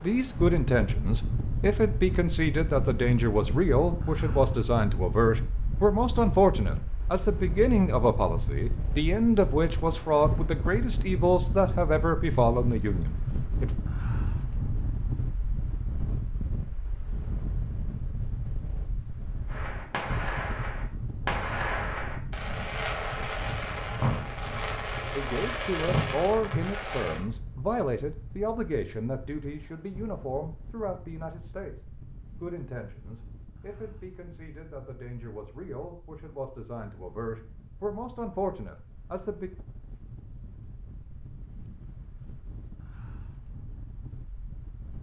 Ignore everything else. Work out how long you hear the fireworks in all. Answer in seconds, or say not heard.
8 s.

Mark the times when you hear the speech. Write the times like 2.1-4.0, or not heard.
0.0-13.7, 25.1-31.8, 32.4-39.5.